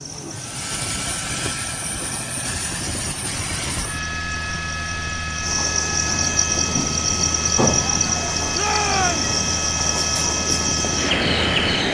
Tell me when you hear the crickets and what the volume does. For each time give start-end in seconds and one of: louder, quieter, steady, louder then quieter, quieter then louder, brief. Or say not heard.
0.0-11.8 louder.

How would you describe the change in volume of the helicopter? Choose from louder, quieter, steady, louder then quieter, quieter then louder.
steady.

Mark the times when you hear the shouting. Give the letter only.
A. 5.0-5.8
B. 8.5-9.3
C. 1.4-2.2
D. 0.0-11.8
B.